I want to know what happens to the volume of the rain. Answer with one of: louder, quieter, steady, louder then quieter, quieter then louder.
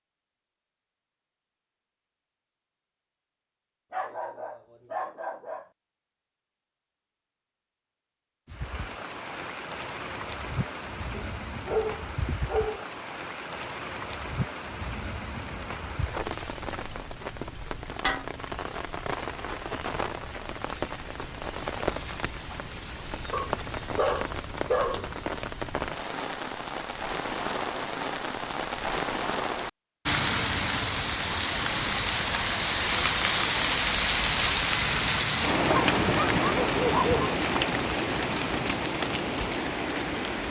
louder.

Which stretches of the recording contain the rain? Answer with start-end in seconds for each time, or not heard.
8.4-40.4.